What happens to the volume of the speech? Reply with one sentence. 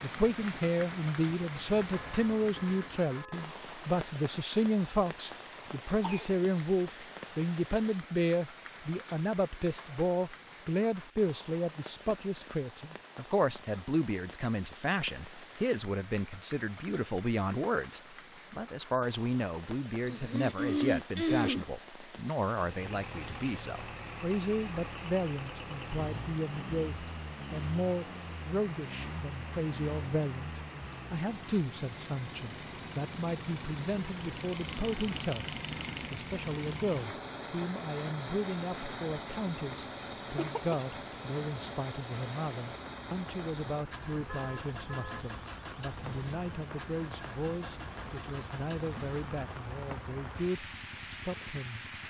The loudness of the speech goes down.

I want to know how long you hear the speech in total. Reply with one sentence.
You can hear the speech for 52 seconds altogether.